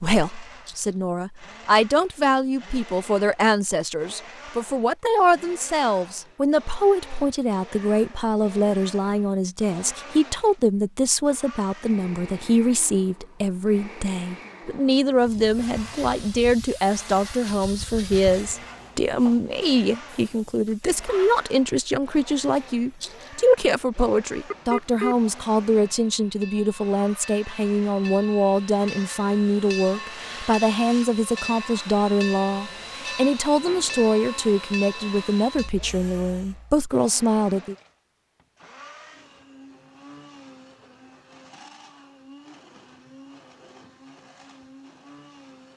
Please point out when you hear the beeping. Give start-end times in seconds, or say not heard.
24.5-25.2.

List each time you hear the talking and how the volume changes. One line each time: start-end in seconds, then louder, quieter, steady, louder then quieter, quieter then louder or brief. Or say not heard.
0.0-37.8 steady.